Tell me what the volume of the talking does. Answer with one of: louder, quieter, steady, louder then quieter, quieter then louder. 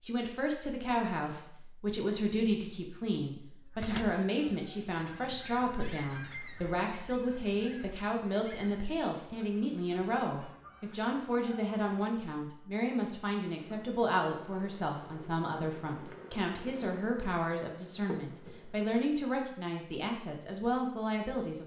steady.